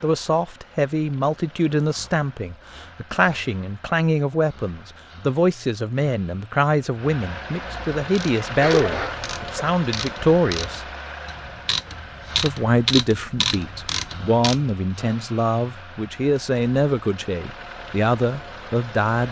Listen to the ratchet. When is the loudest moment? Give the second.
13 s.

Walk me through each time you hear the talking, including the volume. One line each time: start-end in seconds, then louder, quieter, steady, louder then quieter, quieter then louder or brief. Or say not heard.
0.0-10.8 steady
12.3-19.2 steady.